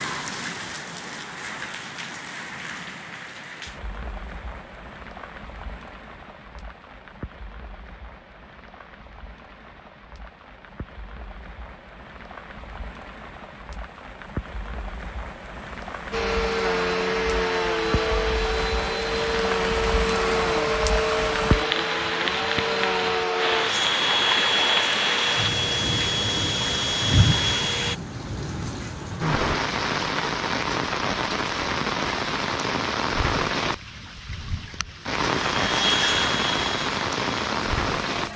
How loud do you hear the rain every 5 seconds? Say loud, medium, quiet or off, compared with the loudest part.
medium, quiet, quiet, medium, loud, loud, loud, loud.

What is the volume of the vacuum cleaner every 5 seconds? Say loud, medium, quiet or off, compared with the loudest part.
off, off, off, loud, loud, loud, off, loud.